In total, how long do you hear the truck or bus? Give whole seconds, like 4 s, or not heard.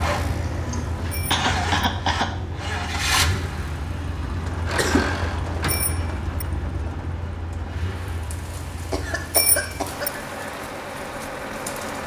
12 s.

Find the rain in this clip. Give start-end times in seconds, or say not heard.
4.4-12.0.